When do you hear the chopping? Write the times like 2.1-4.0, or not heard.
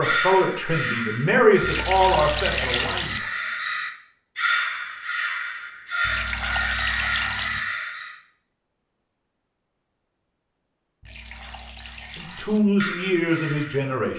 not heard.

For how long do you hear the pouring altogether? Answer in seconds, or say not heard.
5 s.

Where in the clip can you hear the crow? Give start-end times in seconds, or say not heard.
0.0-8.2, 12.2-14.0.